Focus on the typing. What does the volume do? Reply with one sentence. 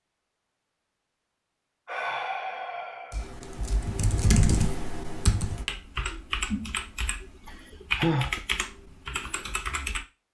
The volume of the typing goes down.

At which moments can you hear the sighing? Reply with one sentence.
The sighing can be heard from 1.9 to 3.3 s and from 7.2 to 8.4 s.